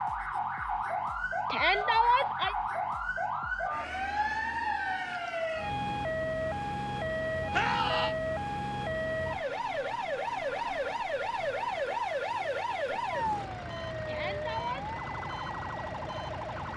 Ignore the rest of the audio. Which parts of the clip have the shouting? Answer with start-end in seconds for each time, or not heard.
1.5-2.5, 7.5-8.2, 14.1-14.8.